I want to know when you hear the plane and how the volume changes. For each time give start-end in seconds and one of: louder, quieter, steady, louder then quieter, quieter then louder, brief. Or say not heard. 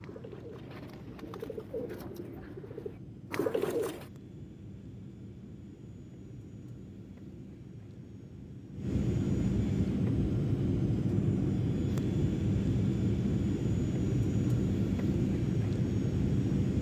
0.0-16.7 louder.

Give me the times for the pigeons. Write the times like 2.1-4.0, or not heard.
0.0-4.0.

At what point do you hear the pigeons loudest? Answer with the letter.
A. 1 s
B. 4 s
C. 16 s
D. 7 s
B.